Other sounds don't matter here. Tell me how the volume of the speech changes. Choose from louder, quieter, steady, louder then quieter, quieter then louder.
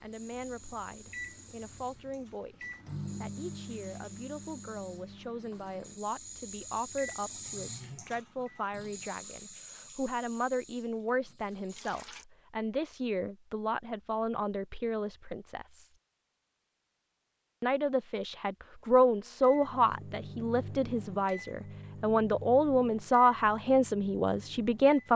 louder.